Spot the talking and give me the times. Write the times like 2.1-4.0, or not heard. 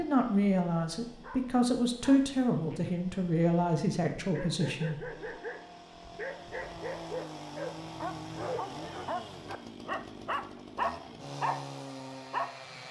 0.0-5.1.